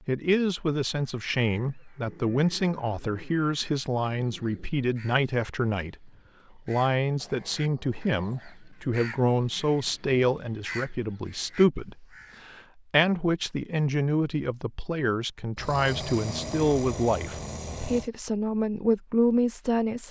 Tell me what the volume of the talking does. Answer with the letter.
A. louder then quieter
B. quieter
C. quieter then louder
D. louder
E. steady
E.